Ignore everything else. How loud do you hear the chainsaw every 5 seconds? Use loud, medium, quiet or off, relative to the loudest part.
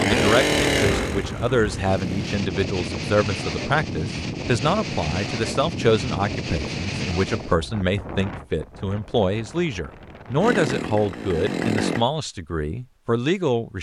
loud, off, loud.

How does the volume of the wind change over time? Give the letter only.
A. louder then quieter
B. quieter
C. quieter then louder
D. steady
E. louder
B.